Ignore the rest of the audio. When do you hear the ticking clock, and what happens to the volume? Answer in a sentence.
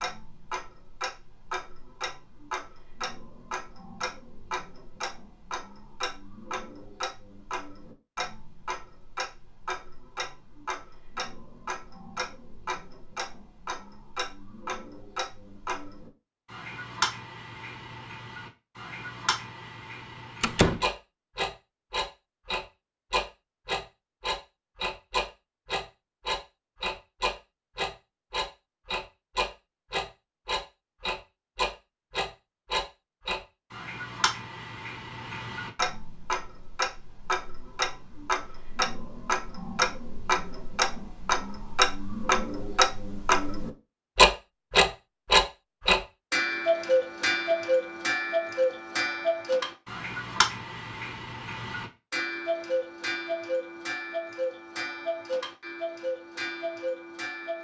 The ticking clock can be heard from 0.0 to 57.5 s, getting louder.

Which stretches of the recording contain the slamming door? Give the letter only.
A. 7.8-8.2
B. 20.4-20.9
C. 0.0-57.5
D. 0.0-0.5
B.